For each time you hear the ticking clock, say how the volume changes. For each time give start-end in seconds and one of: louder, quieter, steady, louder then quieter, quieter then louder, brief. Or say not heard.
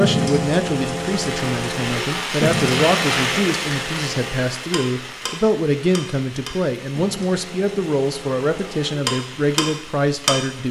0.0-10.3 quieter then louder.